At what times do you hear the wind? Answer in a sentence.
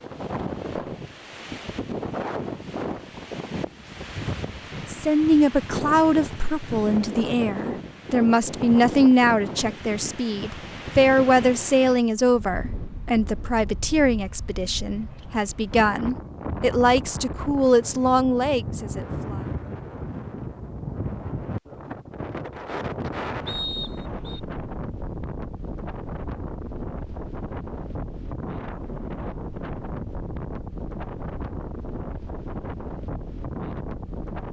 You can hear the wind from 0.0 to 34.4 s.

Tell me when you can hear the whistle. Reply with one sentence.
The whistle can be heard from 23.4 to 24.4 s.